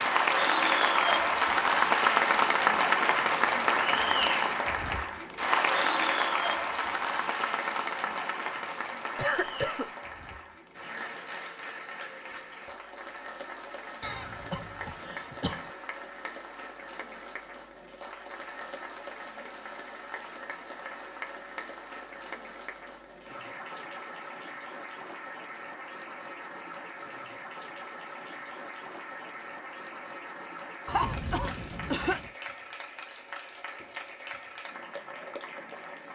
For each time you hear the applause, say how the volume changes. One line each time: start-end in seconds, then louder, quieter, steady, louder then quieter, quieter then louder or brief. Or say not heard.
0.0-36.0 quieter.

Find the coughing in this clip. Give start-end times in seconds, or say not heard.
9.2-9.8, 14.0-15.7, 30.9-32.3.